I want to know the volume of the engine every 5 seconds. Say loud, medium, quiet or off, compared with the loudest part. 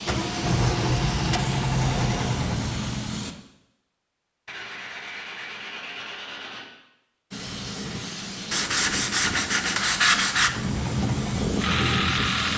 loud, off, loud.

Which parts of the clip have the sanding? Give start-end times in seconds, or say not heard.
0.2-2.4, 4.5-6.7, 8.5-10.5.